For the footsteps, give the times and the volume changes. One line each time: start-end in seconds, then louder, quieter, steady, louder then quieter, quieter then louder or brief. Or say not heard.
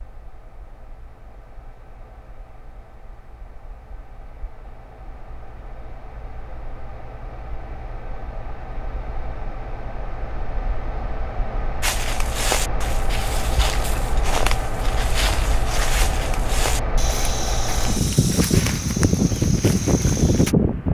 11.8-20.6 steady.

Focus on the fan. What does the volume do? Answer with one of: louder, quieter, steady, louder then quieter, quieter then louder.
louder.